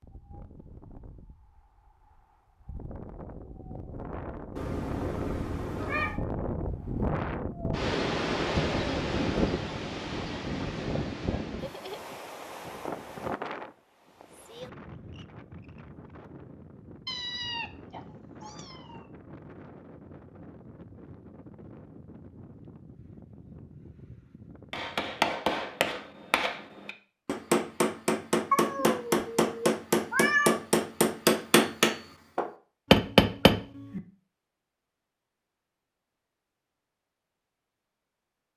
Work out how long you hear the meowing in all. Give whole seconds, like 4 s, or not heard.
6 s.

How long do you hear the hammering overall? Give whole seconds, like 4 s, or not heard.
9 s.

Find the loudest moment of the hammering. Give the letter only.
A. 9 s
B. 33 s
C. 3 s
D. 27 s
B.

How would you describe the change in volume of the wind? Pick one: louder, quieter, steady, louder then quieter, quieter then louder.
louder then quieter.